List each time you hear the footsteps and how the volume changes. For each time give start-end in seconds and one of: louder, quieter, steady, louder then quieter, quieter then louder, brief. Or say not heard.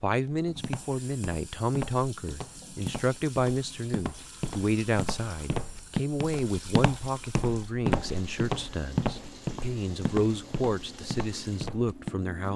0.2-12.2 louder then quieter.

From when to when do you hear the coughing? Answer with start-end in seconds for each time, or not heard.
not heard.